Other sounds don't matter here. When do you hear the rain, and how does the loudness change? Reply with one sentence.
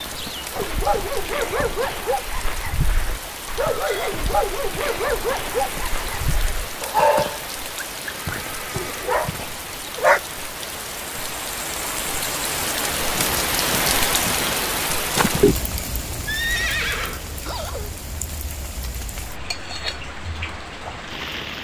The rain can be heard from 0.0 to 21.5 s, getting louder then quieter.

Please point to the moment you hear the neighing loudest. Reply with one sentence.
The volume of the neighing peaks at 17 seconds.